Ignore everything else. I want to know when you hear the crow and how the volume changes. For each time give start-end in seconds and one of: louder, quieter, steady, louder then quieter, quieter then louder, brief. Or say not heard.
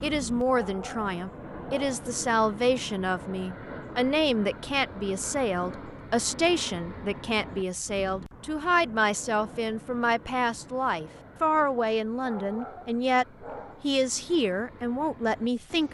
not heard.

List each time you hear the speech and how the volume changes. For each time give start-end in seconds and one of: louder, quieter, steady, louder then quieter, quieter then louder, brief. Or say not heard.
0.0-15.8 steady.